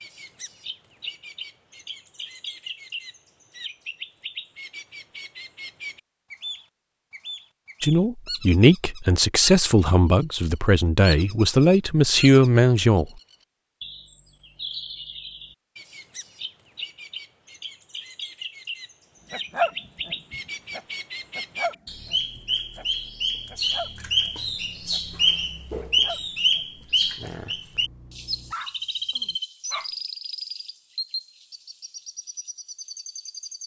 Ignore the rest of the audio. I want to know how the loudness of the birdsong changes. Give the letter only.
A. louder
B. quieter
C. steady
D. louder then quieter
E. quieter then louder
D.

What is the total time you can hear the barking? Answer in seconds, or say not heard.
9 s.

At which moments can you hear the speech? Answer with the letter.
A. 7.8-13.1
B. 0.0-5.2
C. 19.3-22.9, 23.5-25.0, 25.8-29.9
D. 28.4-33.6
A.